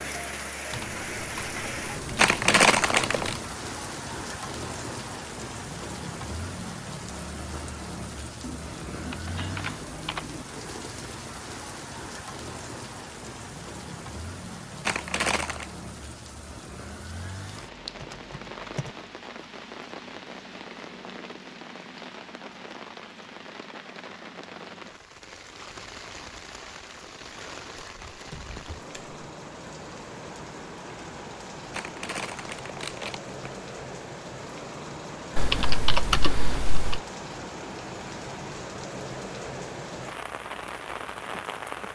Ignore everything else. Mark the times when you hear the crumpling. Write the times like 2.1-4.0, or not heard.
2.1-3.4, 14.8-15.7, 31.7-33.3.